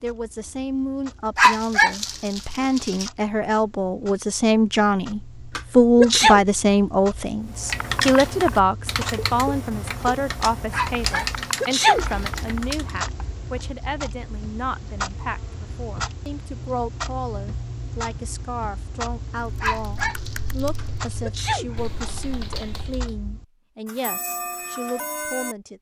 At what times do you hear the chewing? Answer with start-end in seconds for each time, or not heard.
not heard.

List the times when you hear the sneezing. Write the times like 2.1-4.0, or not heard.
5.5-6.4, 11.2-12.2, 20.8-21.8.